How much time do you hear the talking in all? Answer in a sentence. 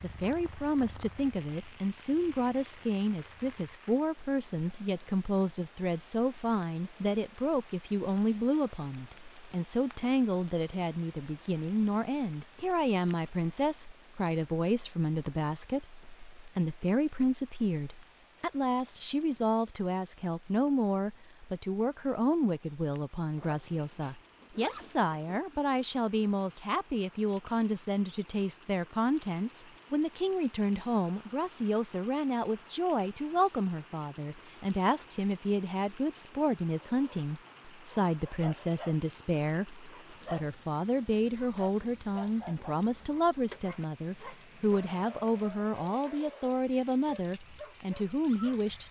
The talking can be heard for 49 seconds in total.